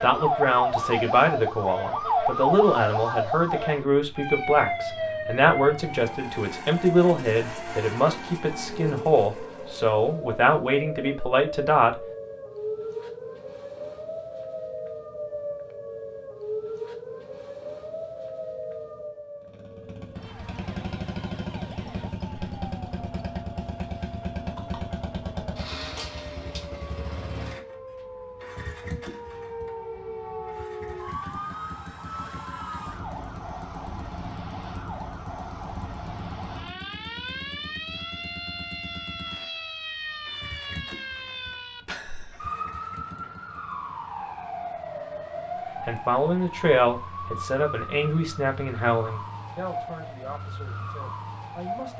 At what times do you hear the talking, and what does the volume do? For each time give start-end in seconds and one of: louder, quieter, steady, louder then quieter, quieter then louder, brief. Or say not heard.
0.0-11.9 steady
45.9-51.9 quieter.